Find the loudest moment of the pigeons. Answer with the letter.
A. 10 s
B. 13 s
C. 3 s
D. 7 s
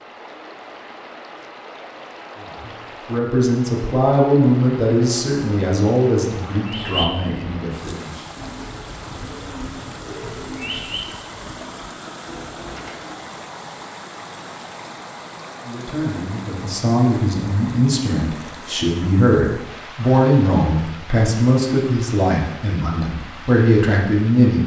D.